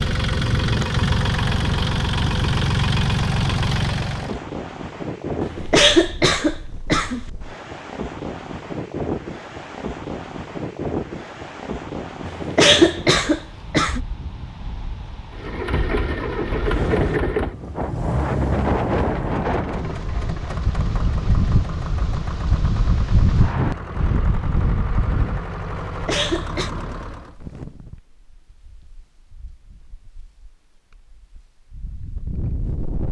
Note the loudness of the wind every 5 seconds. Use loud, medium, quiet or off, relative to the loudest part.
medium, medium, medium, loud, loud, medium, medium.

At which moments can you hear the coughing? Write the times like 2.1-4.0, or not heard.
5.4-7.2, 12.2-14.0, 25.9-26.7.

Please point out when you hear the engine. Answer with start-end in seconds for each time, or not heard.
0.0-4.4, 15.3-27.4.